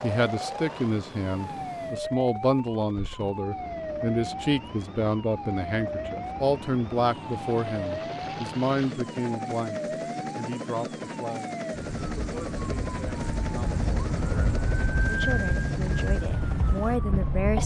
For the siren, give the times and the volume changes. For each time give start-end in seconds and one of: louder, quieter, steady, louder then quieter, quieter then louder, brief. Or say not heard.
0.1-17.6 louder.